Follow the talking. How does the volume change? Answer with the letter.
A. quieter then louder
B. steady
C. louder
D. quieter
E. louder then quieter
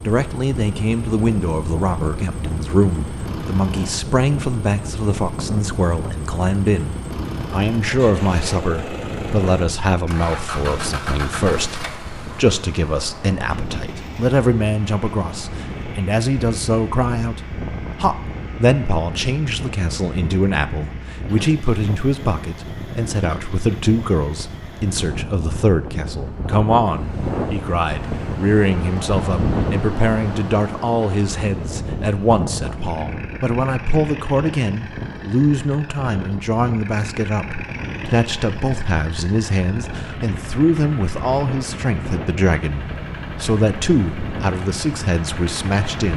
B.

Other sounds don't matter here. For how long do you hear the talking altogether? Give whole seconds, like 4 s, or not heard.
46 s.